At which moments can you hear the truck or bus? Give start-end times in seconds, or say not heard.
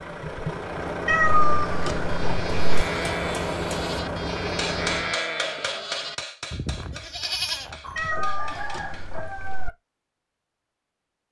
0.0-5.2.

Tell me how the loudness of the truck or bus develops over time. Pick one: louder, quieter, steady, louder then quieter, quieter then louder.
steady.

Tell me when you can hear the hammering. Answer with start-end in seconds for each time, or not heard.
2.5-9.1.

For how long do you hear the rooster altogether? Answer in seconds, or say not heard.
2 s.